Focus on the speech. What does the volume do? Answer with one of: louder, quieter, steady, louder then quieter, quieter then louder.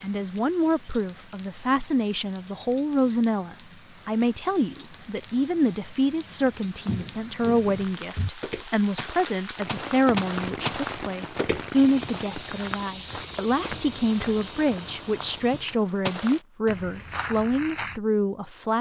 steady.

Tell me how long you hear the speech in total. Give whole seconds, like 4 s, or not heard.
19 s.